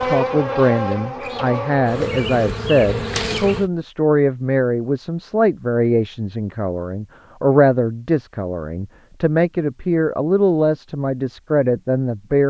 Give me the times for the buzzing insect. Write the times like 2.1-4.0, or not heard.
0.0-3.7.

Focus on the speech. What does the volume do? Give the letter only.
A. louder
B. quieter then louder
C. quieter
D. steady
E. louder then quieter
D.